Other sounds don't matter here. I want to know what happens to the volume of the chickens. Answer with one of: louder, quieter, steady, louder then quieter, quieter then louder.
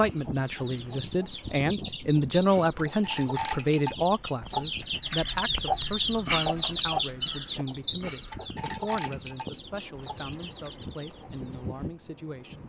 louder then quieter.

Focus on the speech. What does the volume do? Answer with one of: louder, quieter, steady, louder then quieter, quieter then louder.
quieter.